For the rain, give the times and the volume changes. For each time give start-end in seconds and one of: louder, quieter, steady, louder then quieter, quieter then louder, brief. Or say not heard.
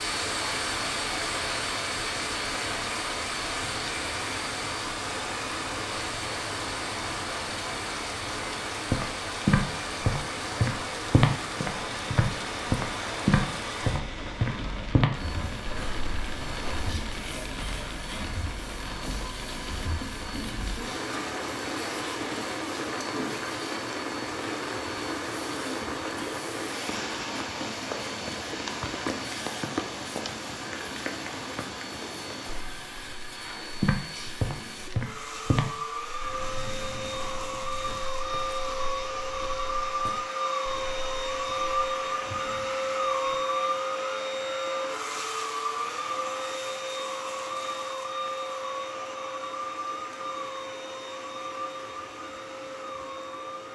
0.0-53.6 quieter.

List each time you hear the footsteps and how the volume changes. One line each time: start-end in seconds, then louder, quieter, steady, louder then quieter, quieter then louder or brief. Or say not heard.
8.9-16.9 quieter
33.8-42.1 quieter.